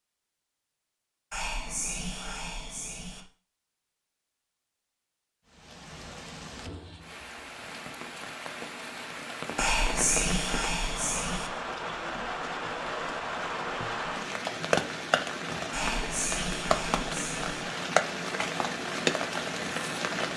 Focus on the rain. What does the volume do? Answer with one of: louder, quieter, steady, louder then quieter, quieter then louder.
louder.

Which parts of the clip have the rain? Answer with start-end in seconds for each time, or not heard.
5.5-20.3.